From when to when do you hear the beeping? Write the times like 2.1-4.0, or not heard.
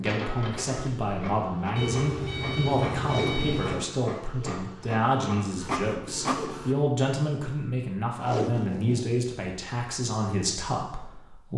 1.8-3.8.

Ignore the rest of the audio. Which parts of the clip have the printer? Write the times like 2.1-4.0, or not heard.
0.0-6.8.